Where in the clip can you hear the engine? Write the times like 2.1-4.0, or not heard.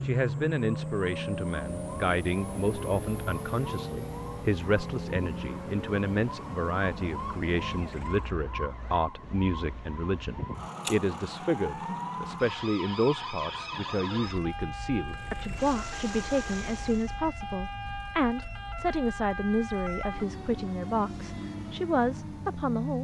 0.0-8.3, 15.0-17.2.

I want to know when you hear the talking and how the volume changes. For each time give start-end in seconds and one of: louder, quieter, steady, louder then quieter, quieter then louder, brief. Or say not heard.
0.0-22.9 steady.